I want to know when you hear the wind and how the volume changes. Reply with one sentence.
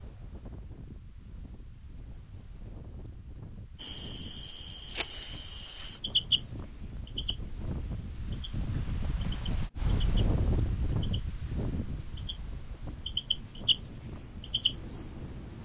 You can hear the wind from 0.0 to 15.6 s, getting louder then quieter.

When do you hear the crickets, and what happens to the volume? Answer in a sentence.
You can hear the crickets from 3.8 to 15.6 s, getting quieter then louder.